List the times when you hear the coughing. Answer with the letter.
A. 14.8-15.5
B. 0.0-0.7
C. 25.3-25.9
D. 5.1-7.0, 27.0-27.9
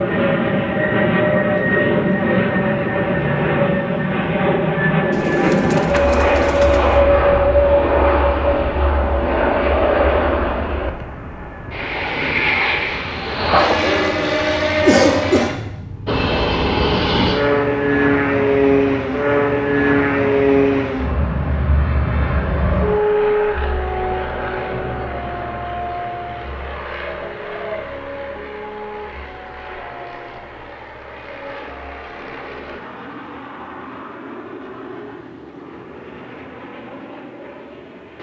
A.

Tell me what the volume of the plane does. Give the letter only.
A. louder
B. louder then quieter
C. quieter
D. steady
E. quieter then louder
C.